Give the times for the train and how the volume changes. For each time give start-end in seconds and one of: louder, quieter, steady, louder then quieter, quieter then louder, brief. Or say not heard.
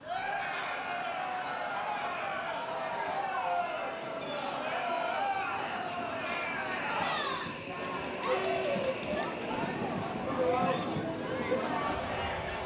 0.0-12.6 louder.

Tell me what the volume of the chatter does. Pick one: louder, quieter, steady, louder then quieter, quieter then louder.
steady.